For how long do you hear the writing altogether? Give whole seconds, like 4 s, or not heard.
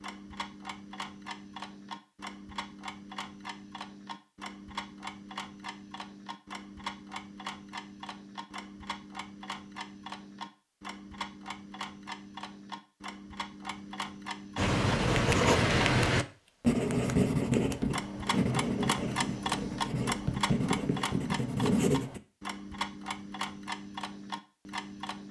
8 s.